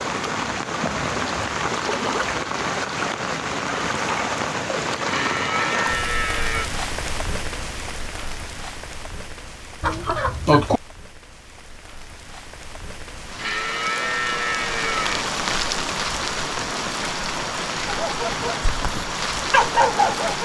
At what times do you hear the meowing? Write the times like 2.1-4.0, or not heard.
not heard.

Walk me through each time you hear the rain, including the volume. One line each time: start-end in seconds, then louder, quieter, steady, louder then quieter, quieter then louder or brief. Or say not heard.
0.0-20.3 quieter then louder.